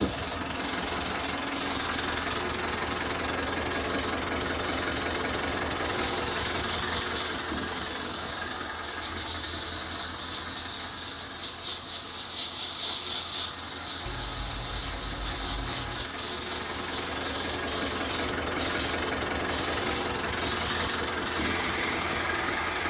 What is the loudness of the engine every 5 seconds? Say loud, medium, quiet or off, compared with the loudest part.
loud, loud, medium, loud, loud.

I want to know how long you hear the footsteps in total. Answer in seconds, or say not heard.
not heard.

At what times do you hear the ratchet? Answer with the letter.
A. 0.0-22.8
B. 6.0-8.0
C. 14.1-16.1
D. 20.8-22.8
C.